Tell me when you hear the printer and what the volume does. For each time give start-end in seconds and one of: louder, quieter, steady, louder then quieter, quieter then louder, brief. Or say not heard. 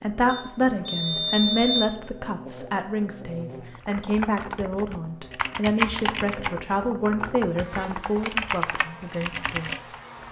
not heard.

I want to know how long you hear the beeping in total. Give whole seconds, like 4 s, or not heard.
2 s.